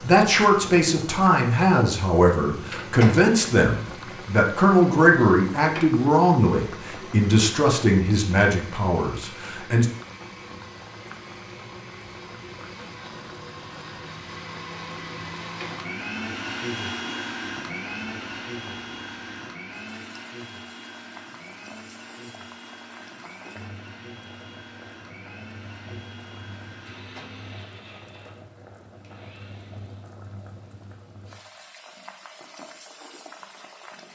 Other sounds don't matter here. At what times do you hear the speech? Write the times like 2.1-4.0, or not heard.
0.0-9.8.